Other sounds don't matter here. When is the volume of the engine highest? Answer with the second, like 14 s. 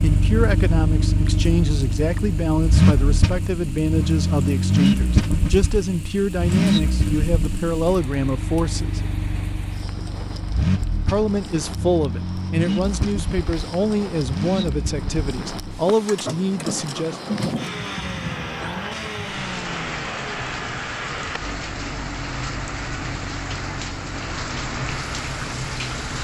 5 s.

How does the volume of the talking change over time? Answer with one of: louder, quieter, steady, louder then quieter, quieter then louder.
steady.